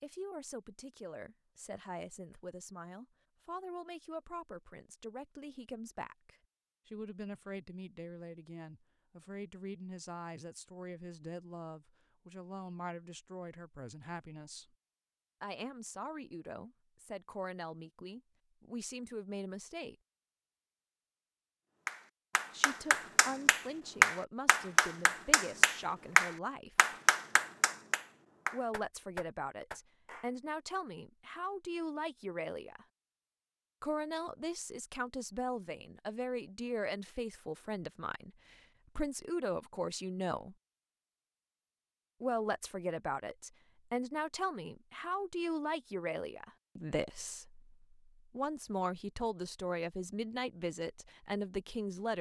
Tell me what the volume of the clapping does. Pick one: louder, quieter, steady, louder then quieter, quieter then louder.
louder then quieter.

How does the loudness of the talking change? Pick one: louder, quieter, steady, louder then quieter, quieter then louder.
louder.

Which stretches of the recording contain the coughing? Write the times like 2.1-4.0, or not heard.
not heard.